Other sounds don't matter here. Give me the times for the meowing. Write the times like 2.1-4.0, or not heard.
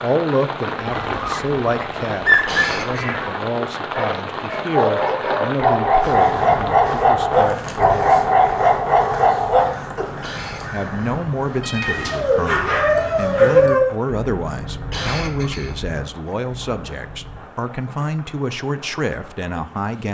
2.9-3.5, 11.6-12.2.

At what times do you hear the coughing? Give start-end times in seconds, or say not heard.
2.3-3.0, 10.1-10.7, 14.7-15.9.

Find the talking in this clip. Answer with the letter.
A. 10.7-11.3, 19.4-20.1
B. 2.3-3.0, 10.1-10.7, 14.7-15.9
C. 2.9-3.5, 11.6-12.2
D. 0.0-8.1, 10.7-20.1
D.